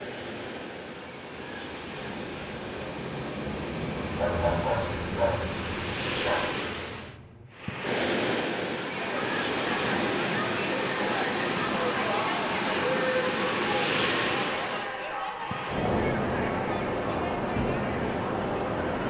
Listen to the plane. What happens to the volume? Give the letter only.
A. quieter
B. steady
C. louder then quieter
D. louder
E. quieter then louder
C.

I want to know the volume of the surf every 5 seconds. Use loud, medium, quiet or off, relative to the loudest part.
medium, loud, loud, loud.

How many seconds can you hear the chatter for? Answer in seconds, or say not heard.
10 s.